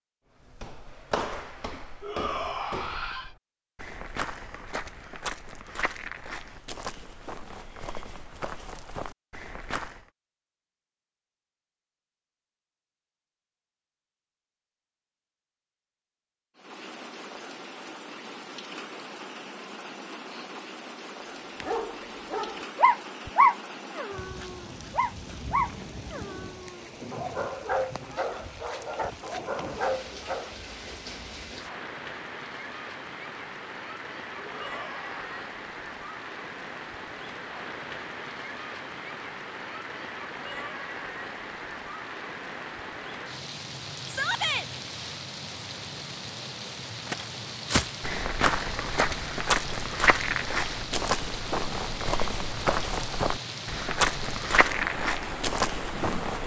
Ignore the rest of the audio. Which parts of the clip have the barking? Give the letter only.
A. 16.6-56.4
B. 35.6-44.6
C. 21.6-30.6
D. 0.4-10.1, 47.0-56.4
C.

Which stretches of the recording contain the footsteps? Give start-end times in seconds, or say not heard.
0.4-10.1, 47.0-56.4.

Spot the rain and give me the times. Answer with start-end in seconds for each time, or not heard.
16.6-56.4.